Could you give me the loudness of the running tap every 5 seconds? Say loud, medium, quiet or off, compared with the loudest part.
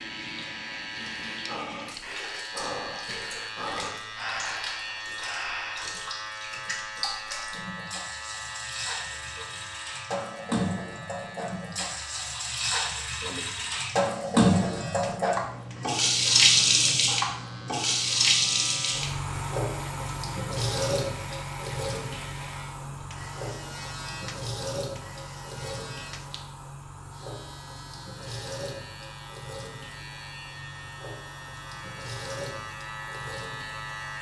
quiet, quiet, loud, loud, medium, quiet, quiet.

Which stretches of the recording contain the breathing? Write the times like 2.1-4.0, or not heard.
0.3-6.0.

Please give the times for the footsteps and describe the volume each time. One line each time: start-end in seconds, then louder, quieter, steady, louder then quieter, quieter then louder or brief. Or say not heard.
not heard.